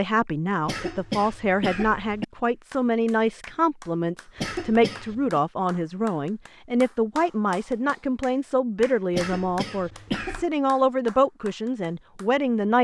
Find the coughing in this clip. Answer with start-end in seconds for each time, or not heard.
0.7-2.2, 4.3-5.4, 9.1-10.4.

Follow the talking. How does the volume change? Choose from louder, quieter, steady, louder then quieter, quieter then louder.
steady.